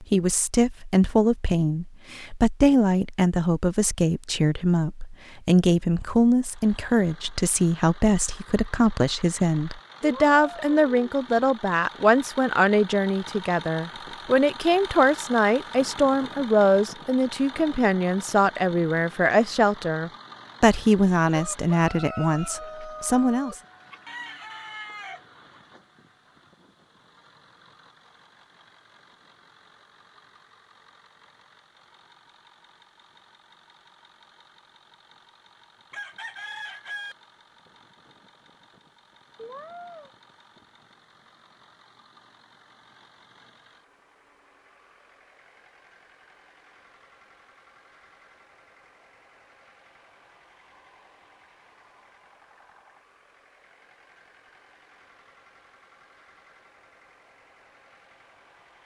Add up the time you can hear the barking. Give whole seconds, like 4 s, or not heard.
not heard.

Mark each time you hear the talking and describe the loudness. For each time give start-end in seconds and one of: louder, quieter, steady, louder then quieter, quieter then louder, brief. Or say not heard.
0.0-23.6 steady.